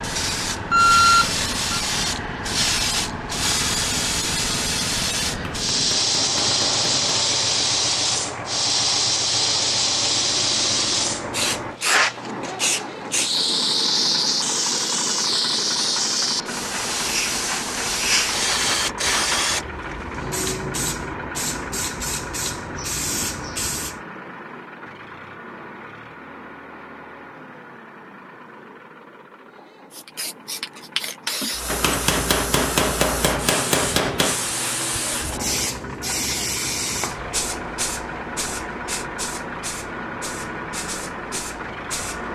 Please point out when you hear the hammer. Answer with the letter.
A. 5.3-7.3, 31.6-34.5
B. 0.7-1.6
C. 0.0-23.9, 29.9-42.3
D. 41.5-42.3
A.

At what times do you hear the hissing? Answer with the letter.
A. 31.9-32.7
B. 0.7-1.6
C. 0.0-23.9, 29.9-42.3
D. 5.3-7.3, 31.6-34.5
C.